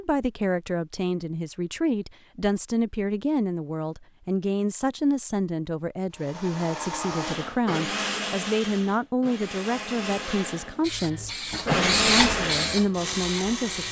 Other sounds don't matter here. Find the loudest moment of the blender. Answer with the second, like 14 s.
12 s.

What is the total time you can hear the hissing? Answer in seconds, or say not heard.
3 s.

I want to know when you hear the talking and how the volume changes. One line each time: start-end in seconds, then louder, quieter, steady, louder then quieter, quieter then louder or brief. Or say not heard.
0.0-13.8 steady.